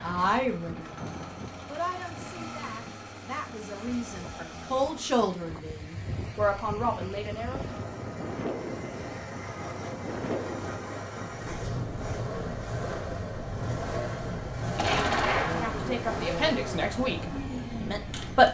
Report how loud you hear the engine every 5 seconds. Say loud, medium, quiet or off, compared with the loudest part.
medium, medium, loud, loud.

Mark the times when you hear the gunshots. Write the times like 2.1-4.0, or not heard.
14.8-16.0.